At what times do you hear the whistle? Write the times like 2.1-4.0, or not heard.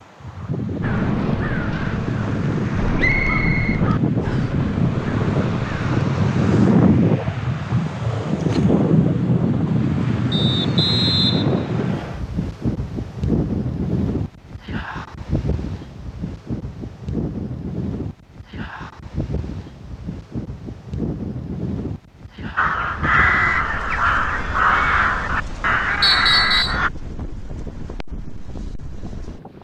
3.0-4.5, 10.3-12.2, 26.0-26.8.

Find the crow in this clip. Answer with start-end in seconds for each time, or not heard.
0.8-6.0, 22.6-26.9.